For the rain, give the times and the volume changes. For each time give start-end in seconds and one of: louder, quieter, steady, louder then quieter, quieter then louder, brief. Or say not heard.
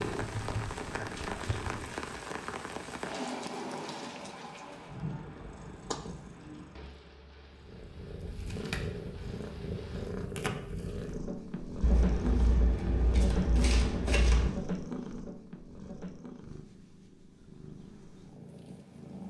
0.0-10.1 quieter.